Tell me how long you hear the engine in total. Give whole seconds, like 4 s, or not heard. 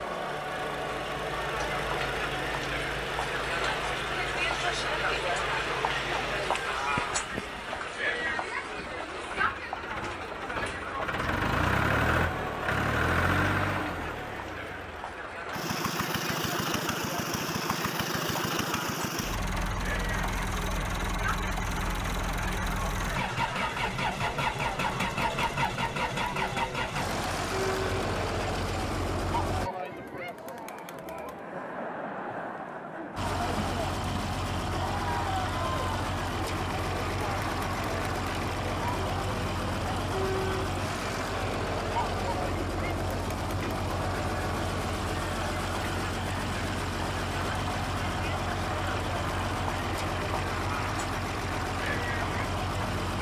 50 s.